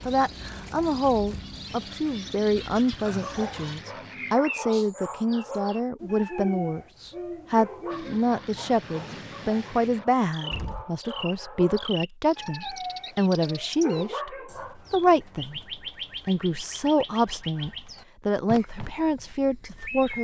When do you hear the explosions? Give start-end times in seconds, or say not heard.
10.5-10.9.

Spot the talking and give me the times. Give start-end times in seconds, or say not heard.
0.1-15.6, 16.2-20.1.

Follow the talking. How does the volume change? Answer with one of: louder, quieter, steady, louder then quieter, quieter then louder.
steady.